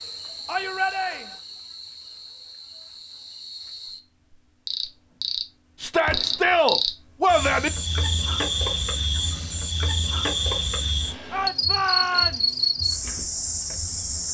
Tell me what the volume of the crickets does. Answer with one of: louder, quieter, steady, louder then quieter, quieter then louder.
louder.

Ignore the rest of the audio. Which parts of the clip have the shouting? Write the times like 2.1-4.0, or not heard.
0.5-1.4, 5.8-7.7, 11.3-12.7.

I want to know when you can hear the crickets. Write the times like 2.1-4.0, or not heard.
0.0-14.2.